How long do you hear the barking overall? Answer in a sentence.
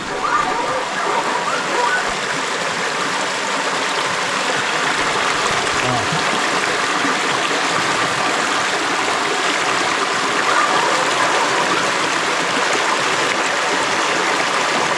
You can hear the barking for 3 seconds altogether.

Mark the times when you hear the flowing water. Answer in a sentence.
You can hear the flowing water from 0.0 to 14.9 s.